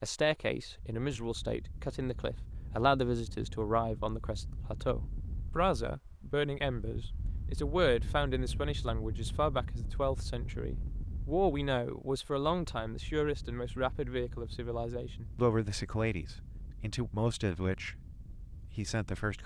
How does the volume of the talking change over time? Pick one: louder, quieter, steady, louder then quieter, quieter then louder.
steady.